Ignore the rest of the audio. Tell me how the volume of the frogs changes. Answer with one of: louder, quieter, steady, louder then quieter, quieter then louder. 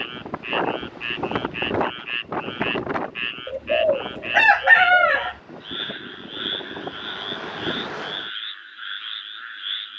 steady.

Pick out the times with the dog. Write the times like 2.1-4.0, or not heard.
not heard.